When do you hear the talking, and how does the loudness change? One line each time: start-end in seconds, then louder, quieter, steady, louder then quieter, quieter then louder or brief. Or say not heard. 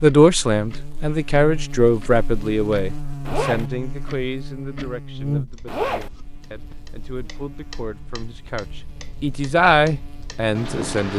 0.0-11.1 quieter then louder.